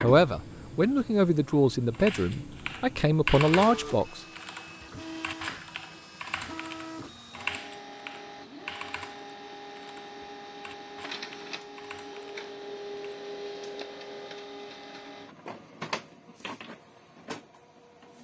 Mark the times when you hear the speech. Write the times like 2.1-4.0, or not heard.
0.0-4.2.